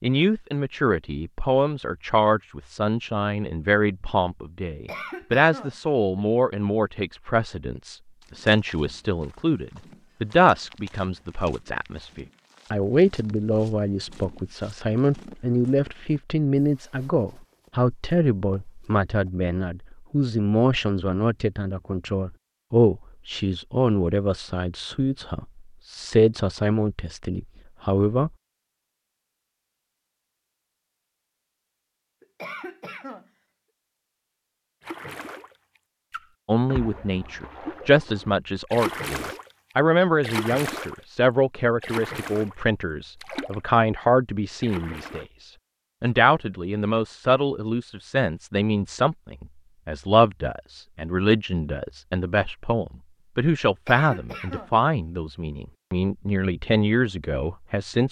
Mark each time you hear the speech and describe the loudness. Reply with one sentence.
You can hear the speech from 0.0 to 28.3 s, at a steady volume; and from 36.5 to 58.0 s, at a steady volume.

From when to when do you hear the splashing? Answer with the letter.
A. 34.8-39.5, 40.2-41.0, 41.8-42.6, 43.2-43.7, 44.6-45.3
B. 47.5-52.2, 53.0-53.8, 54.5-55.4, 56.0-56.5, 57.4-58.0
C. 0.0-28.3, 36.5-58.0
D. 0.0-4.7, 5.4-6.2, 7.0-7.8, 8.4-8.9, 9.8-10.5
A.